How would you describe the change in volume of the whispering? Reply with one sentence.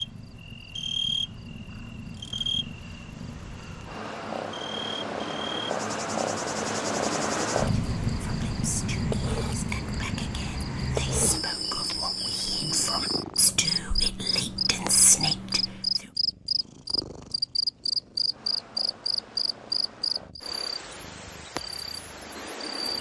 The volume of the whispering goes up.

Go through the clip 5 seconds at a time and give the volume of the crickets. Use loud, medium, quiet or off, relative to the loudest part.
medium, medium, loud, loud, medium.